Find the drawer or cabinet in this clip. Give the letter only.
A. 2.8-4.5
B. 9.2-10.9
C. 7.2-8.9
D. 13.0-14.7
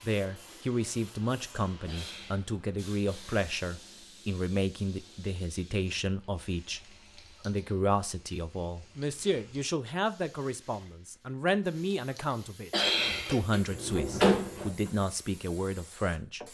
D.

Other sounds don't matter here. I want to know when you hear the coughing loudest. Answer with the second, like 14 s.
13 s.